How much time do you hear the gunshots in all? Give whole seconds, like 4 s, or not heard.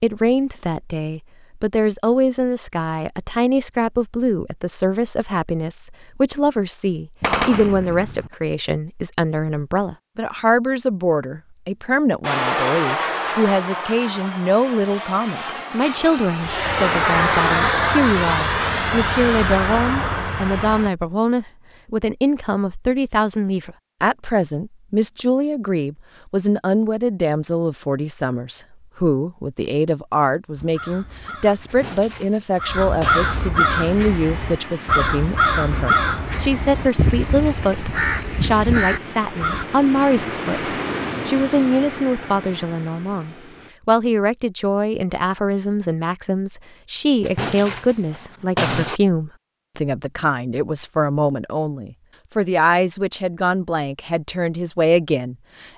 5 s.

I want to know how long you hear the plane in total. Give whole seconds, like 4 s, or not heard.
19 s.